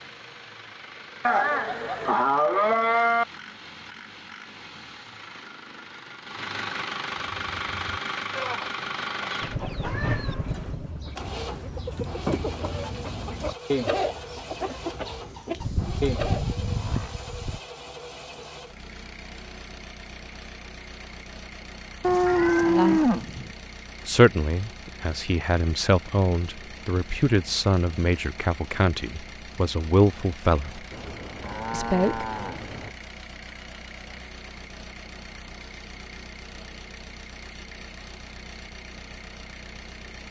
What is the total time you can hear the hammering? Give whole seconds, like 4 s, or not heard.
not heard.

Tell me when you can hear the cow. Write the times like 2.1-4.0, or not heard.
1.2-3.2, 15.6-17.6, 22.0-23.5, 30.9-32.9.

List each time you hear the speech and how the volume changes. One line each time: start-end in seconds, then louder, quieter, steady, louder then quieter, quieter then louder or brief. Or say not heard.
22.6-23.1 brief
24.1-30.8 louder
31.7-32.2 brief.